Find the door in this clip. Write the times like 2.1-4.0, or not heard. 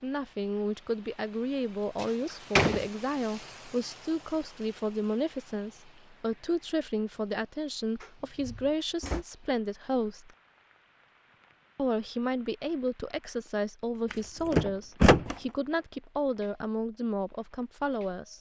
2.0-2.9, 8.0-9.2, 14.1-15.3.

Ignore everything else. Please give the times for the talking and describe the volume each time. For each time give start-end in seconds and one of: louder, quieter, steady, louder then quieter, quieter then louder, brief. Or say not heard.
0.0-10.3 steady
11.8-18.3 steady.